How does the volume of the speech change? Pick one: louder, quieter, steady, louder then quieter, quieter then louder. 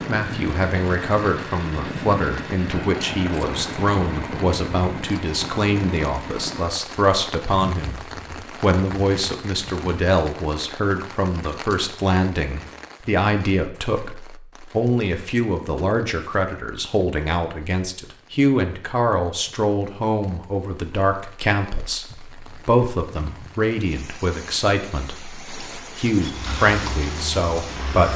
steady.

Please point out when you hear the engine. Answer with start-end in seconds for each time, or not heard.
0.0-6.7, 26.2-28.1.